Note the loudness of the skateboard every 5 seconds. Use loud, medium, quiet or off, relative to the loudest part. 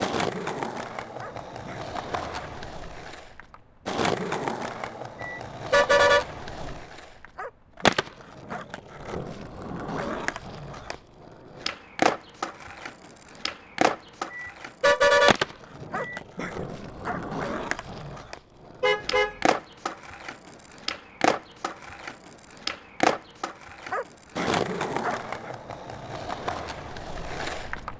loud, loud, loud, loud, loud, medium.